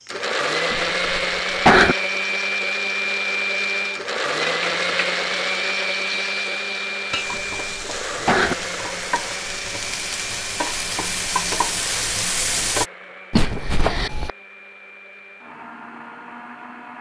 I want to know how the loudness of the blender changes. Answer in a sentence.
The volume of the blender goes down.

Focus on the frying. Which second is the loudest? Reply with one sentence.
The volume of the frying peaks at 12 seconds.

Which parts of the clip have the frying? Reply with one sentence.
You can hear the frying from 4.4 to 12.8 s.